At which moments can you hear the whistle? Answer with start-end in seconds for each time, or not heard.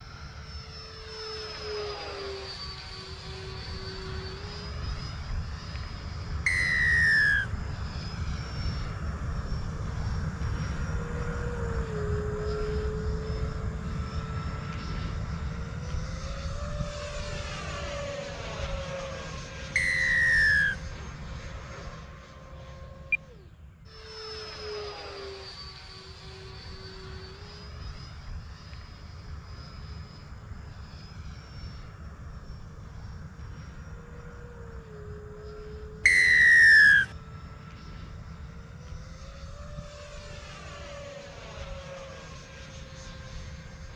6.5-7.5, 19.8-20.8, 36.0-37.0.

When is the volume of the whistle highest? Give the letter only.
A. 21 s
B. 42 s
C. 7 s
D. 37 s
D.